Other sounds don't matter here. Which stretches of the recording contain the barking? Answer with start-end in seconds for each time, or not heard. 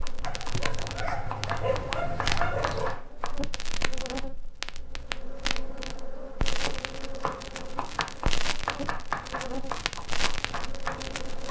0.2-3.0.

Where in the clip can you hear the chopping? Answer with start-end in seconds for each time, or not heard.
0.0-3.4, 6.7-11.4.